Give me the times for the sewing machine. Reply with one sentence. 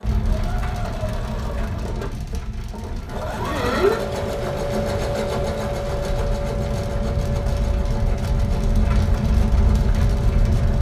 You can hear the sewing machine from 0.0 to 10.7 s.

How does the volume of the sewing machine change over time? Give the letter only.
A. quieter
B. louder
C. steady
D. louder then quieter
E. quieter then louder
D.